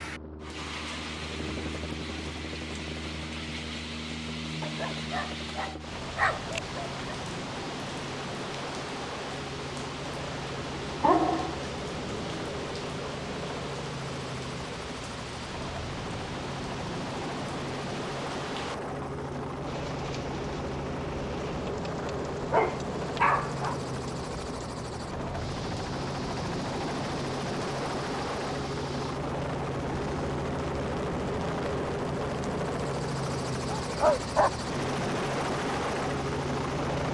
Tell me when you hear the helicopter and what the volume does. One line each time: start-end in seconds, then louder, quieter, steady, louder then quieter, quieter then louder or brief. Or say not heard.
0.0-37.1 louder.